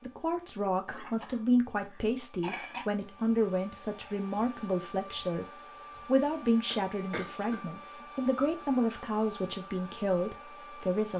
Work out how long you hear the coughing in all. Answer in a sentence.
You can hear the coughing for 3 seconds altogether.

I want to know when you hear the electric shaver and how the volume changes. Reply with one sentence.
You can't hear the electric shaver here.